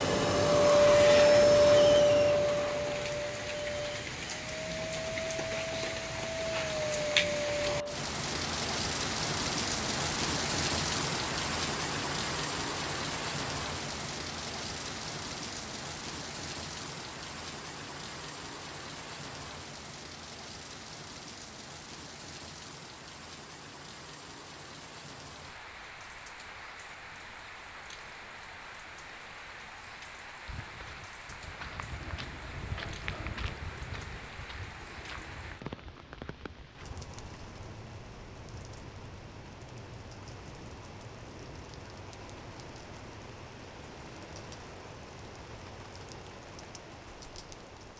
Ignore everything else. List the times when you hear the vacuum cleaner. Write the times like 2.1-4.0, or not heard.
0.0-8.0.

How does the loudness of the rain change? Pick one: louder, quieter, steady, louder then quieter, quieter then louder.
quieter.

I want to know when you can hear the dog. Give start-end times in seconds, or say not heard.
not heard.